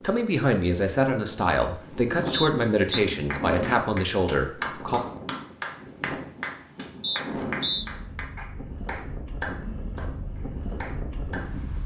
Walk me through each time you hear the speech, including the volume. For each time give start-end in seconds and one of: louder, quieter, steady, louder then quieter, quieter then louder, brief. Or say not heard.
0.0-5.0 steady.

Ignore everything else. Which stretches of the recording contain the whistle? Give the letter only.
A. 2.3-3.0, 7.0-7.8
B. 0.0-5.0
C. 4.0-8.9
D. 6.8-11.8
A.